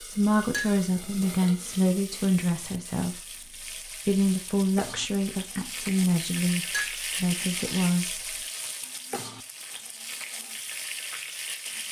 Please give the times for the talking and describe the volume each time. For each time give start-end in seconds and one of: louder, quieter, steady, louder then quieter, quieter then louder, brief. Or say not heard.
0.0-8.4 steady.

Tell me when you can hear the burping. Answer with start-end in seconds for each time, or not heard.
not heard.